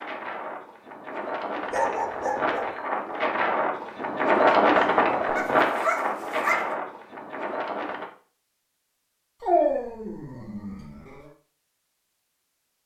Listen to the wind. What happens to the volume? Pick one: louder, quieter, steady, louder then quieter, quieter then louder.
louder then quieter.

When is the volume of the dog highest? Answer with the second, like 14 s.
10 s.